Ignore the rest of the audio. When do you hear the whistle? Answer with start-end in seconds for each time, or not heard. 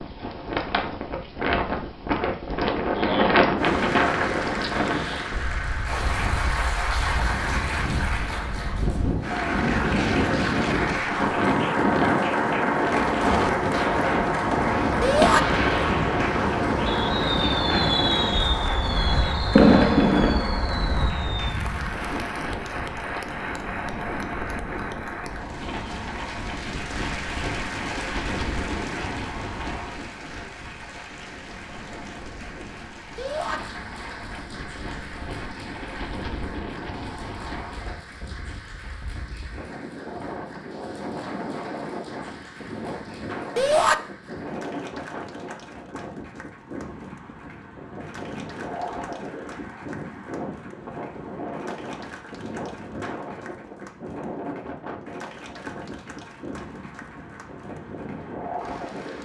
not heard.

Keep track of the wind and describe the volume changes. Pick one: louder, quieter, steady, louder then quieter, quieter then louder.
quieter.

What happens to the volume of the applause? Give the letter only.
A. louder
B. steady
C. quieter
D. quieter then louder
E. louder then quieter
C.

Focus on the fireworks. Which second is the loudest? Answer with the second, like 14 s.
20 s.